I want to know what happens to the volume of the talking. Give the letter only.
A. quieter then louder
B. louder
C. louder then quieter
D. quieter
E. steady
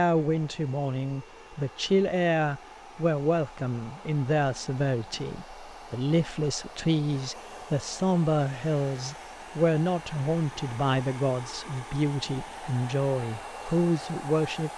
E.